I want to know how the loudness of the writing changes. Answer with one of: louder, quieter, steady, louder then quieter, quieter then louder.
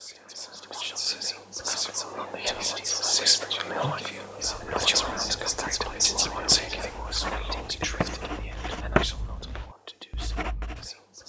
louder then quieter.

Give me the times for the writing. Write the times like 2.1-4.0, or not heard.
4.3-10.9.